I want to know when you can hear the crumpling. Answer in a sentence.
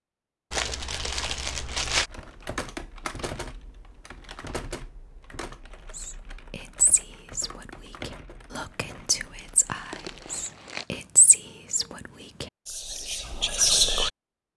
You can hear the crumpling from 0.5 to 2.1 s and from 9.1 to 11.1 s.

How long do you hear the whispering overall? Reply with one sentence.
You can hear the whispering for 8 seconds altogether.